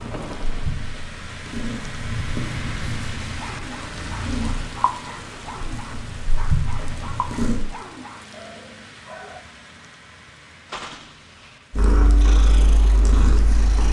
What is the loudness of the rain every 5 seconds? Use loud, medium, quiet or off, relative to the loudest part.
loud, medium, medium.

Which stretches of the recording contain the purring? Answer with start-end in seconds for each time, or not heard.
0.0-7.6, 11.7-13.8.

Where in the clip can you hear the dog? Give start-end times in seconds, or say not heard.
3.4-9.4.